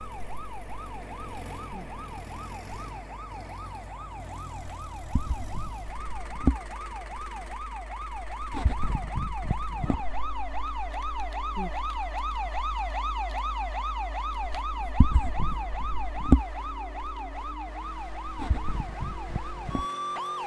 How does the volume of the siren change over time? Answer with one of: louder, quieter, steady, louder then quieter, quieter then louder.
louder.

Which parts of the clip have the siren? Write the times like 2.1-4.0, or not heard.
0.0-20.4.